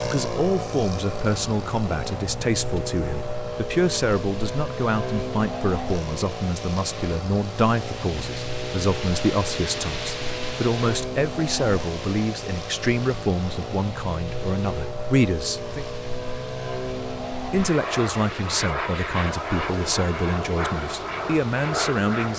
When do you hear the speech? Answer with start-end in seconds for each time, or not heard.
0.0-15.8, 17.4-22.3.